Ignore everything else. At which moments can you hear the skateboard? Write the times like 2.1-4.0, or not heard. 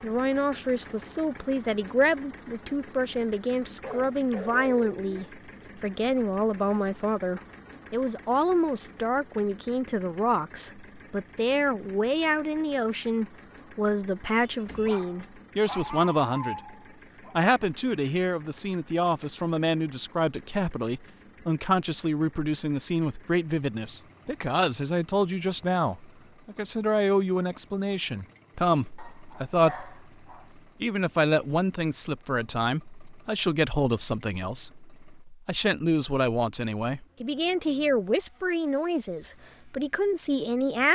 not heard.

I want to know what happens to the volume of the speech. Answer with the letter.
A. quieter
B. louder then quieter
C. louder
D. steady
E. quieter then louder
D.